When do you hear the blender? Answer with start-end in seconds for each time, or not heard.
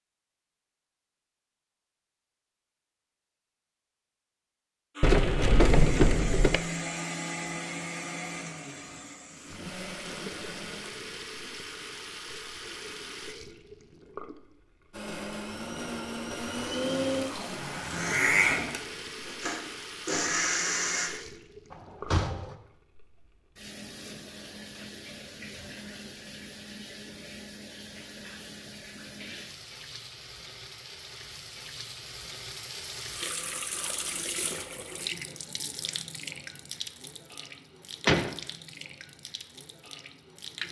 5.0-10.9, 14.9-21.1.